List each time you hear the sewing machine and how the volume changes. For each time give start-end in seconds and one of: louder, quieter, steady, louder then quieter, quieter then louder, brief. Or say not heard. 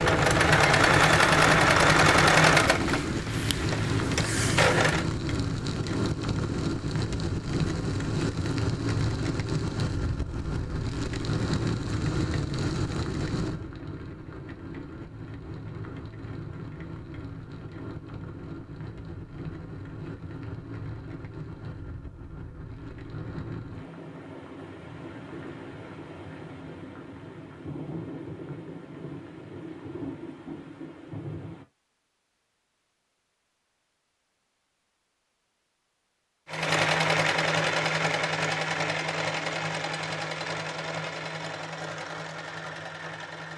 0.0-5.0 quieter then louder
36.5-43.5 quieter.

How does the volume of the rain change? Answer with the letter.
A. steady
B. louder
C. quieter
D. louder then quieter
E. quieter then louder
C.